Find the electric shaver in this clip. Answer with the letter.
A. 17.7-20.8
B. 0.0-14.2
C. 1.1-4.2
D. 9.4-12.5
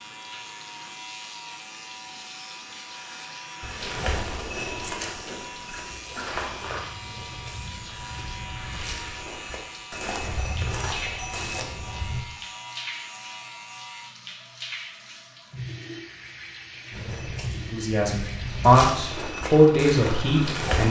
B.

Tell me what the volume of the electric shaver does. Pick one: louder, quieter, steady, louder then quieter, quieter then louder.
steady.